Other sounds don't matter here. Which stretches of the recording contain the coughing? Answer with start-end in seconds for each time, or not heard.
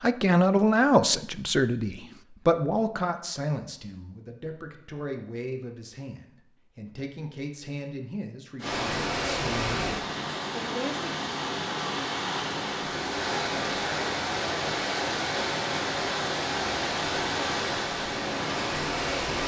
not heard.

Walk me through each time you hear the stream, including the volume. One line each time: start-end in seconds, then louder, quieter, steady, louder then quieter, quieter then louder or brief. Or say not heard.
8.6-19.4 steady.